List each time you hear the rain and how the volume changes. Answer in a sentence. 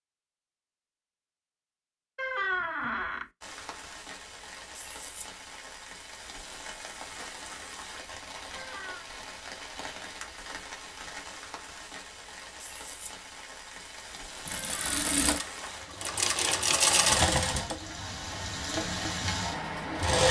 You can hear the rain from 3.4 to 20.2 s, getting louder.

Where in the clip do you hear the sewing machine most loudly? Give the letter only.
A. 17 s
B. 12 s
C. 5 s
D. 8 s
A.